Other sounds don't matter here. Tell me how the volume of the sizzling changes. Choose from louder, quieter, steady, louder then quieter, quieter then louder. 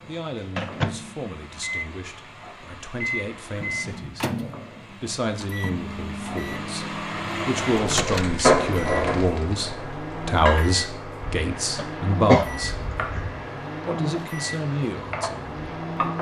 louder then quieter.